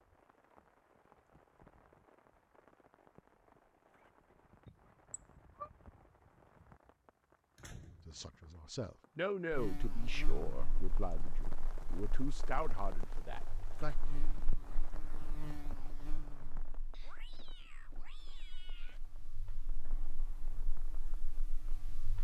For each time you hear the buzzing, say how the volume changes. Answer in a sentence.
You can hear the buzzing from 9.5 to 22.1 s, getting quieter then louder.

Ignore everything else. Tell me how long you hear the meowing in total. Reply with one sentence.
You can hear the meowing for 3 seconds altogether.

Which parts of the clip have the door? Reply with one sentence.
You can hear the door from 6.8 to 8.4 s.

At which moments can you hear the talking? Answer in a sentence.
You can hear the talking from 8.1 to 13.9 s.